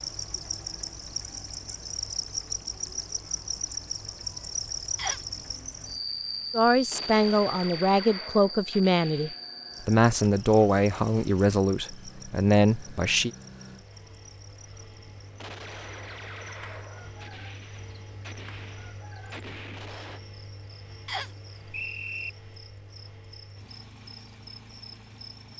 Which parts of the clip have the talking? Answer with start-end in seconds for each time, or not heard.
6.5-13.3.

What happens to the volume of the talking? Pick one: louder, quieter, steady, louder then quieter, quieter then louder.
steady.